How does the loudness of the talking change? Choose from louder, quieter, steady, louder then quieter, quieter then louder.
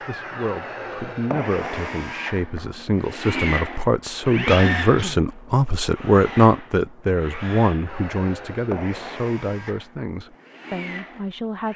louder then quieter.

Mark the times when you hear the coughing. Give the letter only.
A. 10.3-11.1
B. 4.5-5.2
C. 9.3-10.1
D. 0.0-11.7
B.